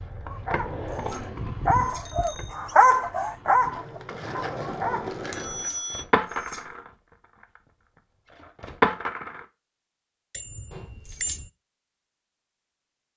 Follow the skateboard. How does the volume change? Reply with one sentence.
The loudness of the skateboard goes down, then up.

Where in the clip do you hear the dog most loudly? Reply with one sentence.
The volume of the dog peaks at 3 seconds.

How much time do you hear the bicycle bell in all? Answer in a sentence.
The bicycle bell can be heard for 3 seconds in total.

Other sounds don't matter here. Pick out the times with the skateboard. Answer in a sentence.
The skateboard can be heard from 0.0 to 9.4 s.